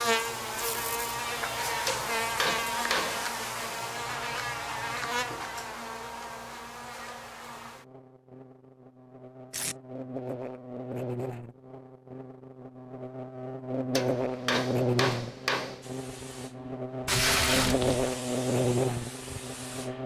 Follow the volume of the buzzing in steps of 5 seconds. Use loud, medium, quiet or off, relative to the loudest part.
loud, medium, loud, loud.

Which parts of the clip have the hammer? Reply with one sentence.
You can hear the hammer from 1.9 to 3.4 s and from 13.9 to 15.9 s.